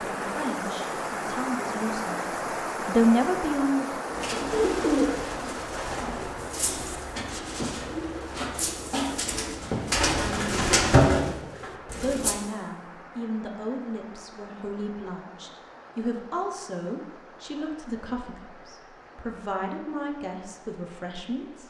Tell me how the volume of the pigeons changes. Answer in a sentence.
The volume of the pigeons goes down, then up.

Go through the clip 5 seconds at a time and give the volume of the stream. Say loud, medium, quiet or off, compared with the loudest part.
loud, medium, quiet, quiet, quiet.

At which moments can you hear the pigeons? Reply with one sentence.
The pigeons can be heard from 4.0 to 12.4 s.